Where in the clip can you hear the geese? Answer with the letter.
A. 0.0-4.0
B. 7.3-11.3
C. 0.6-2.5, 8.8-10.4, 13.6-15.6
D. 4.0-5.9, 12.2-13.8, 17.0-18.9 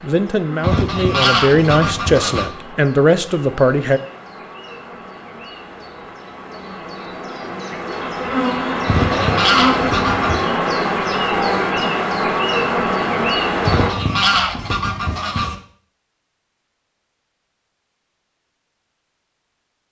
C.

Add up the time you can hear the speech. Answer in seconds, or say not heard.
4 s.